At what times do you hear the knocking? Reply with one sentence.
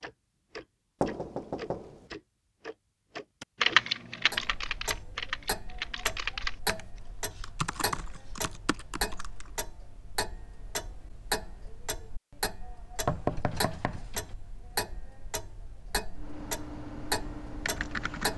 The knocking can be heard from 1.0 to 2.0 s and from 13.1 to 14.3 s.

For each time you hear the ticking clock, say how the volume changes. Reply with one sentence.
The ticking clock can be heard from 0.0 to 18.3 s, at a steady volume.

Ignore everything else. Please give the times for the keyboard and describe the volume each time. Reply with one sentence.
You can hear the keyboard from 3.4 to 9.5 s, getting quieter; and briefly from 16.1 to 18.3 s.